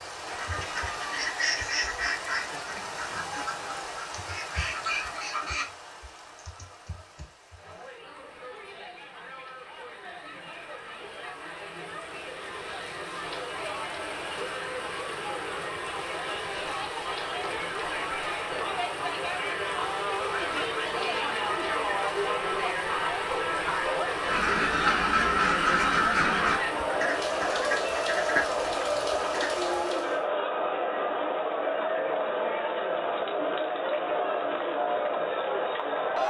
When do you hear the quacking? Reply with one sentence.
You can hear the quacking from 0.3 to 5.7 s and from 24.2 to 29.5 s.